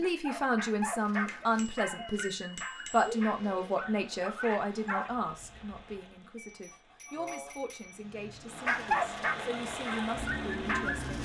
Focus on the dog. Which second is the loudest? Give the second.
9 s.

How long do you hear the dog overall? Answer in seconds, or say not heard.
8 s.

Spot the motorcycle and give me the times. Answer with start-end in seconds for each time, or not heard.
7.9-11.2.